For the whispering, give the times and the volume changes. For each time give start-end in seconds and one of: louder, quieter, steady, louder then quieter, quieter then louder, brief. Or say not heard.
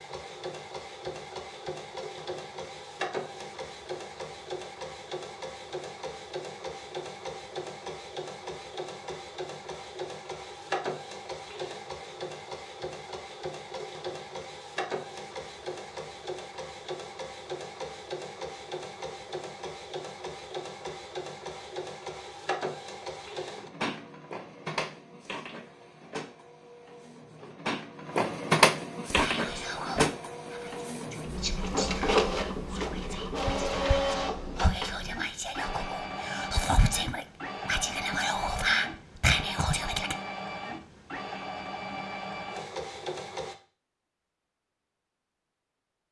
29.1-40.1 louder.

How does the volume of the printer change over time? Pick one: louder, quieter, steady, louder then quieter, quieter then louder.
louder then quieter.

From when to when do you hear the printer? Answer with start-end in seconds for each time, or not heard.
0.0-43.5.